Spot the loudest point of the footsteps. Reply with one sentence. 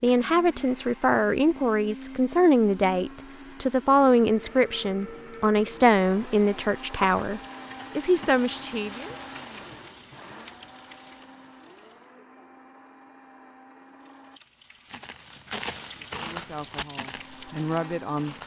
The volume of the footsteps peaks at 16 seconds.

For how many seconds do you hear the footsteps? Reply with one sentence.
You can hear the footsteps for 4 seconds altogether.